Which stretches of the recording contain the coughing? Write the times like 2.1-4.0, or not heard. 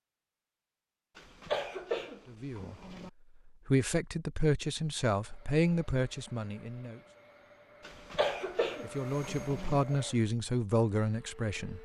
1.1-3.1, 7.8-9.8.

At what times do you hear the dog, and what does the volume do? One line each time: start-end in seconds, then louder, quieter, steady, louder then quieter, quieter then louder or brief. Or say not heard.
not heard.